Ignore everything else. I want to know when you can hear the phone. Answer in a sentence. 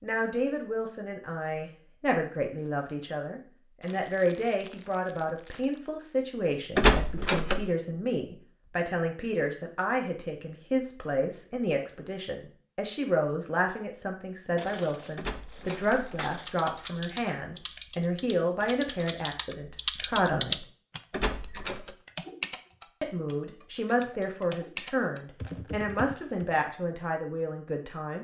The phone can't be heard in this clip.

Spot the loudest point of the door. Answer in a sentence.
The volume of the door peaks at 7 seconds.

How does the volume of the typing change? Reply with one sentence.
The loudness of the typing goes up, then down.